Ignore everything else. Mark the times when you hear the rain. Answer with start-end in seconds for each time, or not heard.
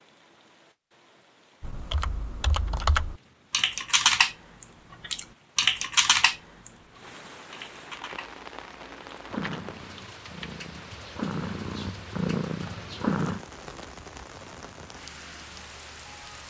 0.0-16.4.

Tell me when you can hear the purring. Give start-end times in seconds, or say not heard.
9.3-13.4.